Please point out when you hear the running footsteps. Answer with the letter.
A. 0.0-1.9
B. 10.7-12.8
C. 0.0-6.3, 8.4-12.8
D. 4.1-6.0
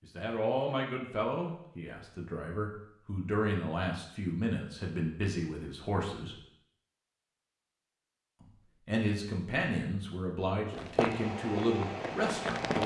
B.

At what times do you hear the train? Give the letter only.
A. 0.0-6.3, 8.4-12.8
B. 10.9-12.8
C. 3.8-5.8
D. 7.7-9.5
B.